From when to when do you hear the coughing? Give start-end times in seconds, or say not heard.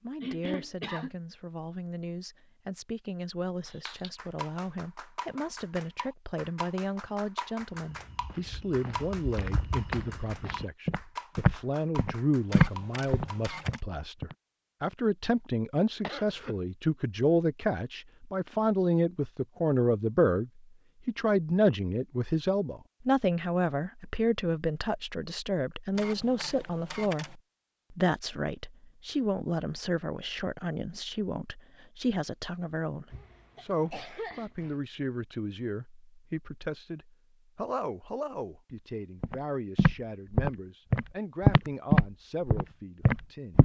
0.2-1.1, 16.0-16.6, 33.1-34.8.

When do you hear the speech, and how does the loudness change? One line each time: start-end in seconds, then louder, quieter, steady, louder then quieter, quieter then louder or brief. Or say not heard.
0.0-43.5 louder then quieter.